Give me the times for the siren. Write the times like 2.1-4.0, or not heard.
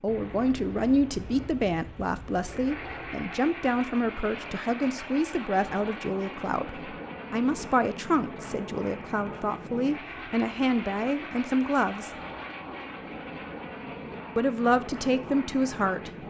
not heard.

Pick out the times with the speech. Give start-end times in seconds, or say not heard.
0.0-12.2, 14.3-16.1.